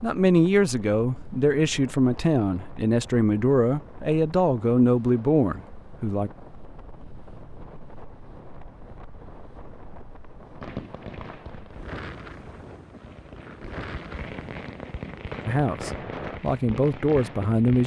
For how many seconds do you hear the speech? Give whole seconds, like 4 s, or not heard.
9 s.